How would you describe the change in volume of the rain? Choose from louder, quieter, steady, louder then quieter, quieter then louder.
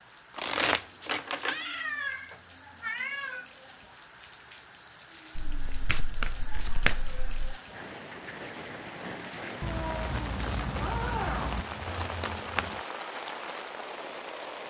louder.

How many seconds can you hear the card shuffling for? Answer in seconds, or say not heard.
6 s.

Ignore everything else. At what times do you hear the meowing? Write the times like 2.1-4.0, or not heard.
1.4-3.5, 9.6-11.7.